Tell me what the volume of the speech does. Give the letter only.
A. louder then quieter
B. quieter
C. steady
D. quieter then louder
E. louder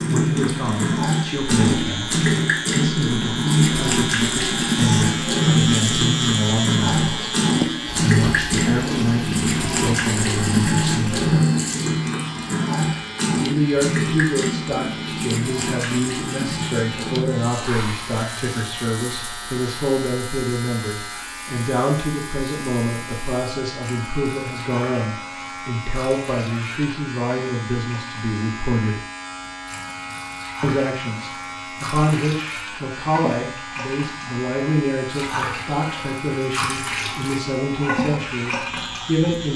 C.